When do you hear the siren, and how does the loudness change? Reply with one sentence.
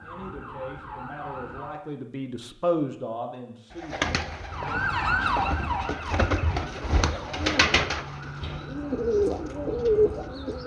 The siren can be heard briefly from 0.0 to 1.8 s; and from 4.5 to 10.6 s, getting quieter.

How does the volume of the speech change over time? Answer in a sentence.
The loudness of the speech goes up, then down.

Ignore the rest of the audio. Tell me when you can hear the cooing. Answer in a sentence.
The cooing can be heard from 3.7 to 10.6 s.